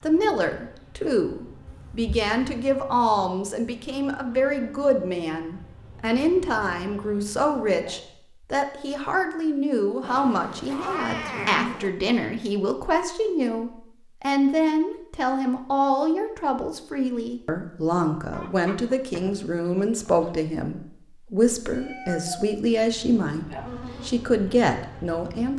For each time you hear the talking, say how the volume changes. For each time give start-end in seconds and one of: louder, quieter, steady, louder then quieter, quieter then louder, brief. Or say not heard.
0.0-25.5 steady.